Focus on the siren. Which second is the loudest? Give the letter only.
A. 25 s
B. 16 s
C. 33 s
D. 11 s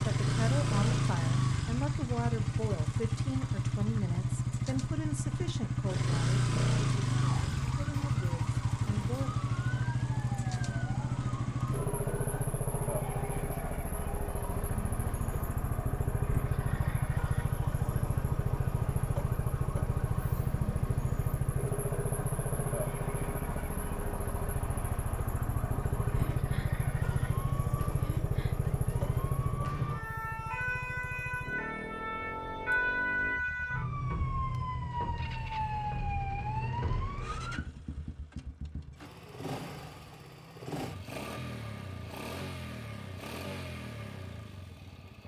C.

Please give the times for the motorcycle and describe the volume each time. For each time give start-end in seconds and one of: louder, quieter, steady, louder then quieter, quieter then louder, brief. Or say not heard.
0.0-45.2 quieter.